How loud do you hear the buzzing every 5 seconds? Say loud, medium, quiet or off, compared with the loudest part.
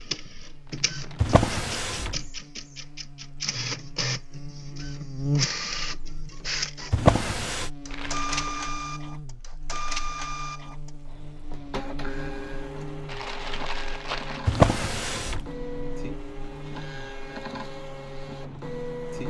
medium, loud, medium, medium.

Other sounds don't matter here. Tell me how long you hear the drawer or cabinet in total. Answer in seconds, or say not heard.
3 s.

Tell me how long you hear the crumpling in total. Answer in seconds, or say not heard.
3 s.